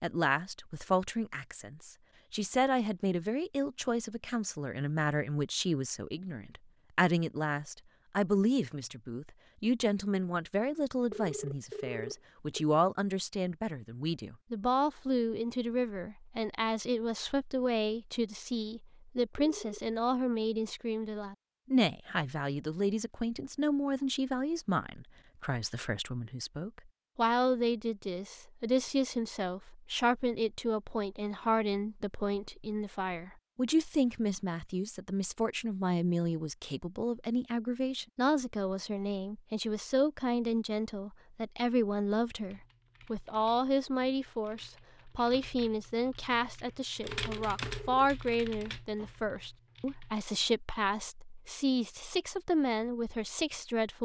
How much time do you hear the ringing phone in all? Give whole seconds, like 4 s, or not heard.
3 s.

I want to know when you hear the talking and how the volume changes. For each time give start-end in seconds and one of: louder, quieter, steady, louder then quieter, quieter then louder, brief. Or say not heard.
0.0-53.9 steady.